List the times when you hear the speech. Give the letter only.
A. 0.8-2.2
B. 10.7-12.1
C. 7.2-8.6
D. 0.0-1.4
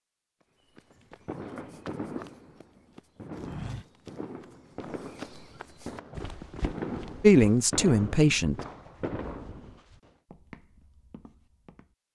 C.